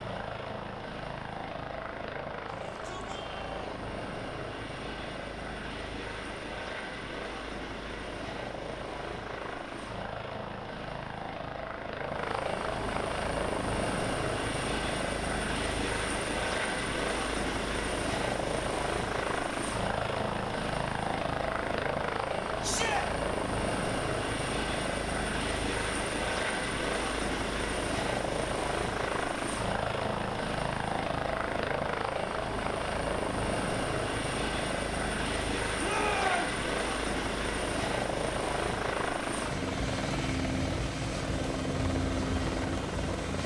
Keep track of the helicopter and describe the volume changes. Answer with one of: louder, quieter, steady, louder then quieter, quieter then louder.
louder.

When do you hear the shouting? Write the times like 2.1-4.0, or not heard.
2.5-3.9, 22.6-23.1, 35.8-36.5.